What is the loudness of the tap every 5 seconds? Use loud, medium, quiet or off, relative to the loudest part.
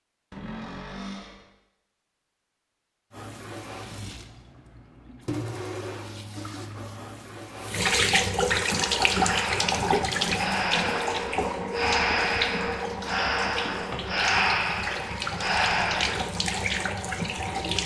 quiet, loud, loud, loud.